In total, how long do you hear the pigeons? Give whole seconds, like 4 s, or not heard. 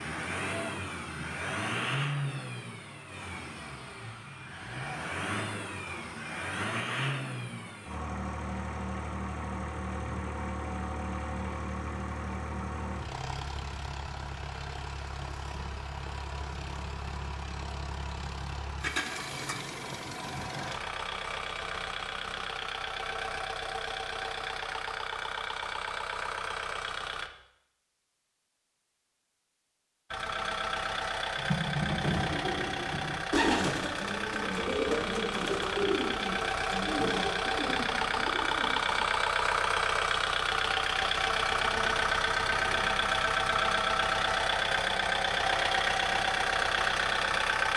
8 s.